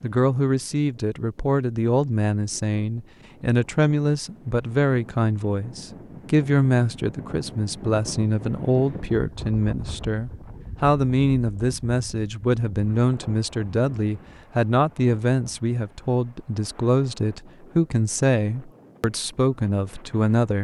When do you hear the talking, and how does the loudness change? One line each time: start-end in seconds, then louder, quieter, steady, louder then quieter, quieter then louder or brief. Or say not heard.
0.0-20.5 steady.